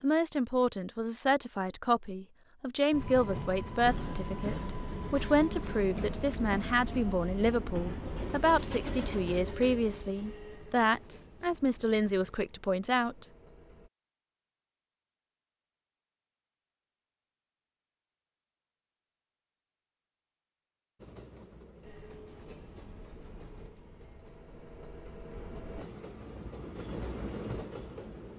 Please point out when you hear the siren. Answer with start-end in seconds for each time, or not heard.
not heard.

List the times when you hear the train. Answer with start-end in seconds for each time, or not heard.
2.9-13.9, 20.9-28.3.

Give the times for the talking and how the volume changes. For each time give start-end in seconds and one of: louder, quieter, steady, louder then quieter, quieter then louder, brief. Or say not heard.
0.0-13.3 steady.